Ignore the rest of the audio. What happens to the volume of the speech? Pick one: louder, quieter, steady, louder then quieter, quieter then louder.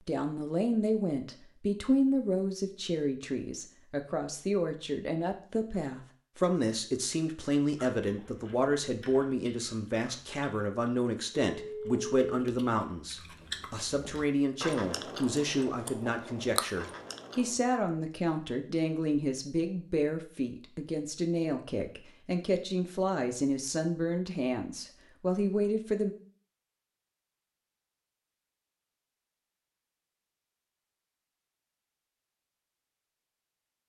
steady.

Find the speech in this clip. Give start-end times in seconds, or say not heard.
0.1-26.1.